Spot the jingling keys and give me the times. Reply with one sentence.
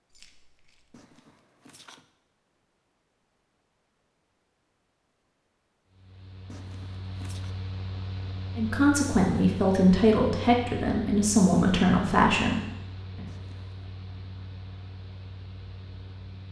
You can hear the jingling keys from 0.1 to 1.0 s.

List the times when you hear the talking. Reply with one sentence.
You can hear the talking from 8.6 to 13.2 s.